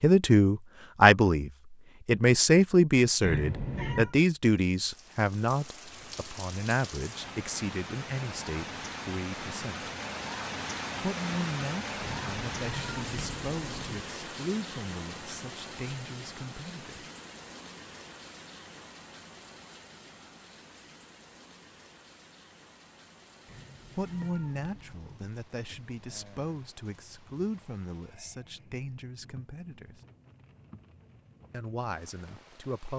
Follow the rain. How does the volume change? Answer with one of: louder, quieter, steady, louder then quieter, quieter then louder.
quieter.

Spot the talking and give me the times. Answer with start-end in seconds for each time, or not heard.
0.0-9.9, 11.0-17.1, 23.9-30.0, 31.5-32.9.